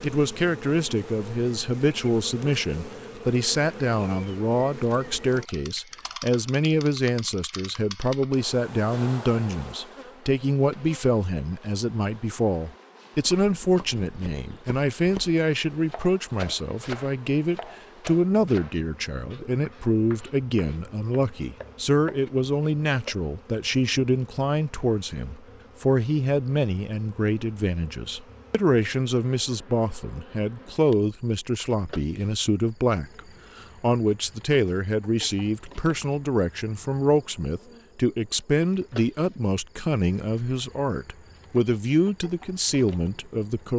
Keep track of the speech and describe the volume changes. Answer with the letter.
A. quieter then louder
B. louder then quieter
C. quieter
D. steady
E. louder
D.